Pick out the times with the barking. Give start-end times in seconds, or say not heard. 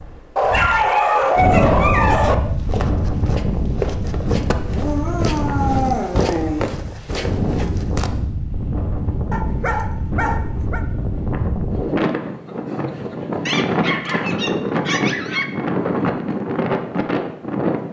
0.3-2.4, 4.7-6.7, 9.3-10.8, 13.4-15.4.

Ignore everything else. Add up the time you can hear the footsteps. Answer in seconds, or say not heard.
6 s.